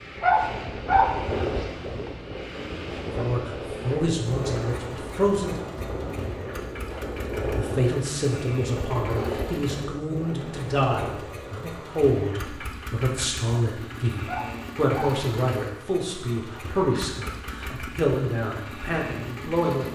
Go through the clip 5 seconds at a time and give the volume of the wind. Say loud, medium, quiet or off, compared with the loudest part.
loud, loud, medium, off.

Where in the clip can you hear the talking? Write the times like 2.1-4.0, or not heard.
3.1-5.8, 7.5-19.9.